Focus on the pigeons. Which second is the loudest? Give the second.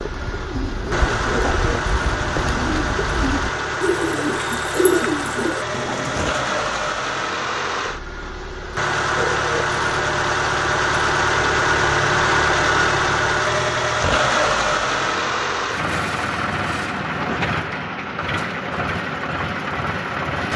5 s.